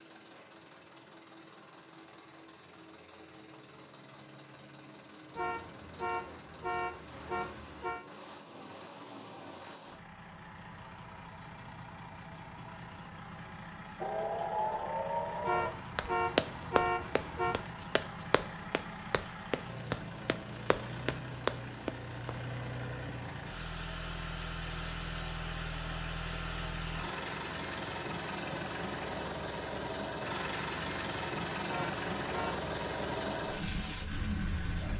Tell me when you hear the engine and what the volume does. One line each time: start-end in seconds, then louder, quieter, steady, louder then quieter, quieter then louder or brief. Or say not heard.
0.0-34.9 louder.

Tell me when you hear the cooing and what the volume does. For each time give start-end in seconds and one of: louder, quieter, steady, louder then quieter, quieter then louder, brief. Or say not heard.
not heard.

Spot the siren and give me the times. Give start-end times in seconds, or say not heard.
14.0-15.8.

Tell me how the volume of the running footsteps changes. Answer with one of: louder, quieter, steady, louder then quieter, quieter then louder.
quieter then louder.